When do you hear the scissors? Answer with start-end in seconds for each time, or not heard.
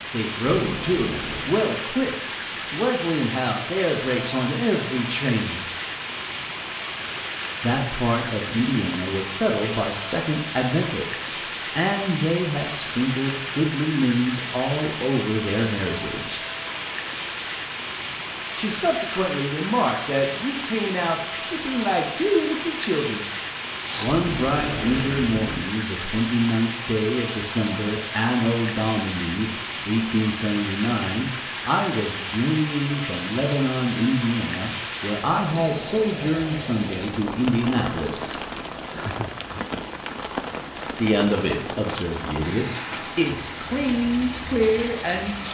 0.7-1.6, 24.1-25.6.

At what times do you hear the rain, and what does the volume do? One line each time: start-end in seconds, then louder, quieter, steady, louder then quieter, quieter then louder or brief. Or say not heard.
0.0-45.4 steady.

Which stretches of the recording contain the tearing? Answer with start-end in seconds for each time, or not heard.
23.8-24.6.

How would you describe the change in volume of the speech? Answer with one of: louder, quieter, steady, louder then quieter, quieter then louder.
steady.